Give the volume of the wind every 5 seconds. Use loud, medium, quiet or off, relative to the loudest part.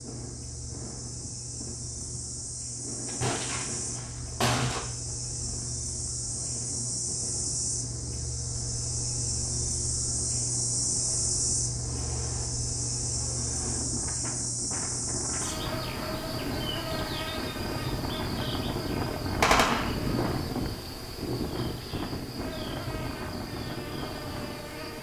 medium, quiet, medium, loud, loud.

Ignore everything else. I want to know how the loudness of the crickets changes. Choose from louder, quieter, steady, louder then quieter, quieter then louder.
louder then quieter.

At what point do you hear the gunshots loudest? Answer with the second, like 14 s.
20 s.